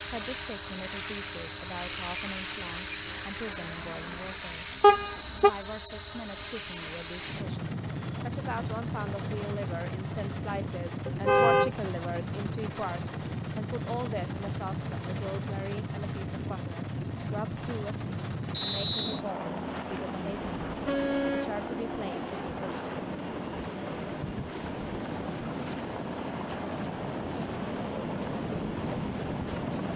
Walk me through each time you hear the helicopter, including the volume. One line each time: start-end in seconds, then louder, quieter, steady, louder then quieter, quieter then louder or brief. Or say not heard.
0.0-29.9 steady.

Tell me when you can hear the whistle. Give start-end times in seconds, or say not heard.
18.5-19.2.